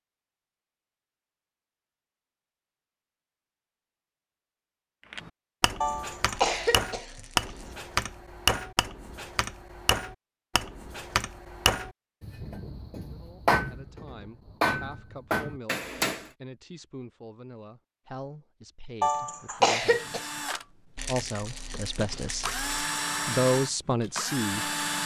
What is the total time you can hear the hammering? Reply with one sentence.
You can hear the hammering for 11 seconds altogether.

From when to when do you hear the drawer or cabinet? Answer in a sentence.
You can't hear the drawer or cabinet here.